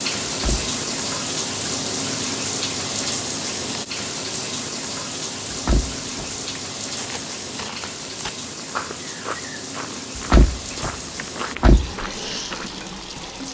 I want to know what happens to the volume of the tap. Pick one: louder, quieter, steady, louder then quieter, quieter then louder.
quieter.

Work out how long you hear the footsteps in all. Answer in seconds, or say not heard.
6 s.